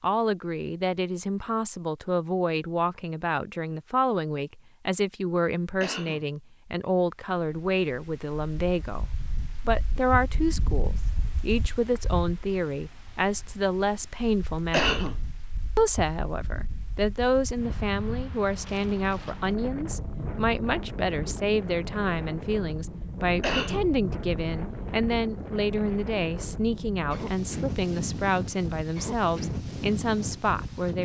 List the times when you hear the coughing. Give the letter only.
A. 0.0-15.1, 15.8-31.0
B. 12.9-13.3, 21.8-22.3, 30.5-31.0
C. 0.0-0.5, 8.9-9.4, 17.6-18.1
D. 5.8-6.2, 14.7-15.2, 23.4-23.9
D.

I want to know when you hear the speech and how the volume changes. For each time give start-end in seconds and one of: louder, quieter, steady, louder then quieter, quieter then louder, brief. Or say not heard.
0.0-15.1 steady
15.8-31.0 steady.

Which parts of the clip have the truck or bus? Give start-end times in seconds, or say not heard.
not heard.